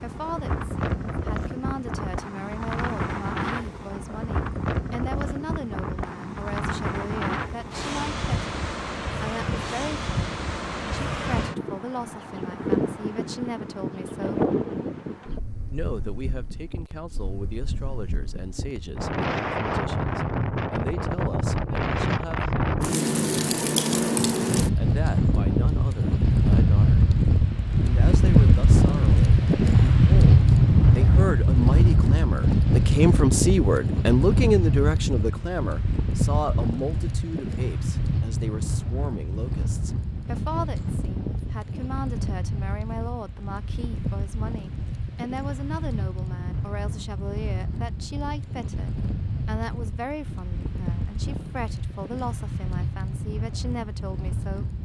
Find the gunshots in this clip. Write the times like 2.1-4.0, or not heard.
not heard.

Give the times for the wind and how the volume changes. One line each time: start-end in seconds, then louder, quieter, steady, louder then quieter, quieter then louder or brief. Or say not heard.
0.0-54.8 louder then quieter.